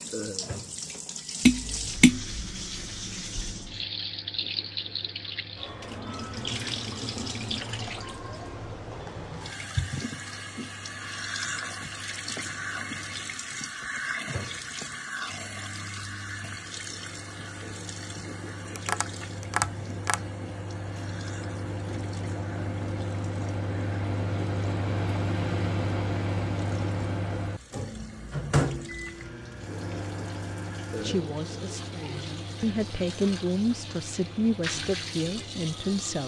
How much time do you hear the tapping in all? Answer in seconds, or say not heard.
2 s.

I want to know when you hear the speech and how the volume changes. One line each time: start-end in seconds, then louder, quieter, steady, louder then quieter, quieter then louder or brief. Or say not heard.
31.0-36.2 louder.